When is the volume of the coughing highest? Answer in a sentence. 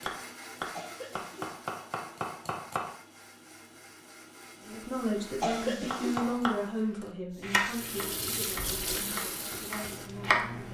The loudest moment of the coughing is at 6 seconds.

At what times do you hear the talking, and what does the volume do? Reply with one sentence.
You can hear the talking from 4.7 to 10.6 s, getting quieter.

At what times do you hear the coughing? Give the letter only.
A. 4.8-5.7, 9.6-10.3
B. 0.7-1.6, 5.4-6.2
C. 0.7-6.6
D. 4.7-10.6
B.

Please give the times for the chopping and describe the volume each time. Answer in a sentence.
You can hear the chopping briefly from 0.0 to 3.0 s; and from 5.9 to 10.6 s, getting louder then quieter.